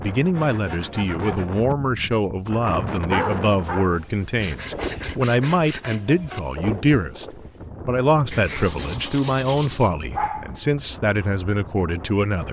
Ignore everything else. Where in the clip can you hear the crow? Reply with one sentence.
You can't hear the crow here.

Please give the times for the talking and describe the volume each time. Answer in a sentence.
You can hear the talking from 0.0 to 12.4 s, at a steady volume.